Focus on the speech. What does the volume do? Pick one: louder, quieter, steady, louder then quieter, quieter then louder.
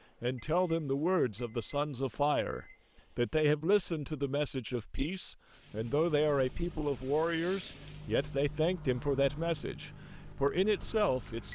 steady.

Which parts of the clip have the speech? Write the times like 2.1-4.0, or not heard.
0.2-11.5.